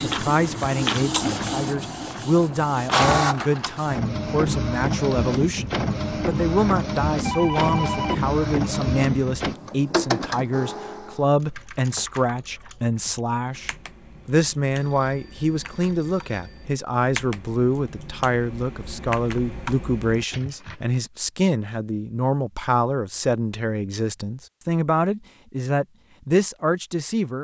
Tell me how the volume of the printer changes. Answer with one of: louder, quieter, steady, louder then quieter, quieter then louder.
steady.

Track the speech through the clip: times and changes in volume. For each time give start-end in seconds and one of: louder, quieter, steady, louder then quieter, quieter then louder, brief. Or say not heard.
0.1-27.3 steady.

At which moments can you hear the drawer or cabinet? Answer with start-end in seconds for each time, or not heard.
not heard.